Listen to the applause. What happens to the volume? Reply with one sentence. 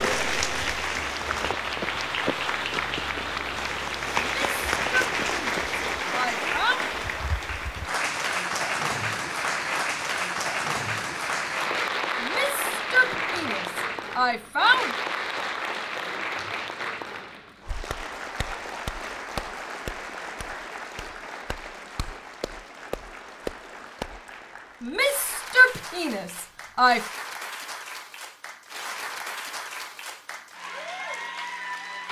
The loudness of the applause goes down.